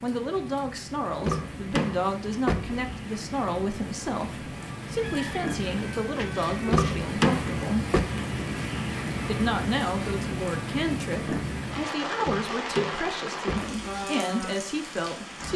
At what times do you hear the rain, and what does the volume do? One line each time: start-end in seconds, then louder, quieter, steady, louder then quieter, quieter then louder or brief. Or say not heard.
0.0-15.5 louder.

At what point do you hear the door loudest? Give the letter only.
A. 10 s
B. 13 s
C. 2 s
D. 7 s
D.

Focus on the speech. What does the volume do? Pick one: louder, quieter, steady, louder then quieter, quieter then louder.
steady.